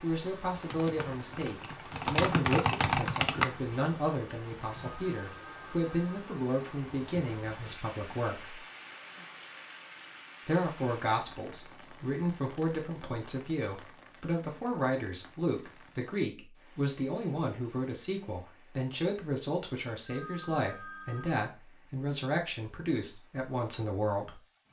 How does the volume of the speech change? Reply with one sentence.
The volume of the speech stays about the same.